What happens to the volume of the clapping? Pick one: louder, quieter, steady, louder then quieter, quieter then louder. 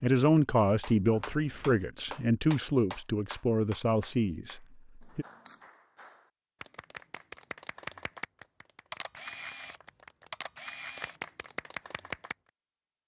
quieter then louder.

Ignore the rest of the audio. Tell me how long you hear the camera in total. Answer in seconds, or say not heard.
4 s.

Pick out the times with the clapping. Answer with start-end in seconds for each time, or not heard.
0.8-12.3.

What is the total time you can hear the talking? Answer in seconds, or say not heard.
5 s.